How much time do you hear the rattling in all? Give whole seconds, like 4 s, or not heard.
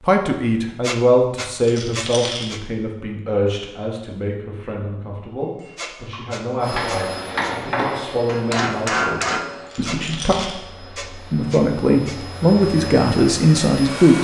2 s.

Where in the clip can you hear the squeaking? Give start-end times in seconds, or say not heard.
0.8-2.6, 5.8-7.5, 9.8-12.2.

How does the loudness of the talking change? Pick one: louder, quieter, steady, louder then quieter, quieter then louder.
quieter then louder.